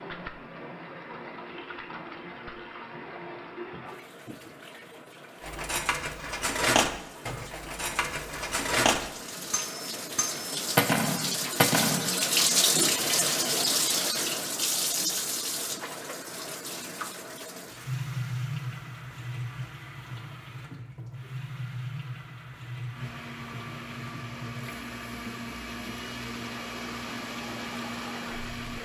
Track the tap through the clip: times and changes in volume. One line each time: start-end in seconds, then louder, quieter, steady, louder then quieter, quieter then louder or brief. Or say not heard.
0.0-28.8 louder then quieter.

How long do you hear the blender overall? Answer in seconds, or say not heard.
6 s.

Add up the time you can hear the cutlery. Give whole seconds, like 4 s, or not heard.
7 s.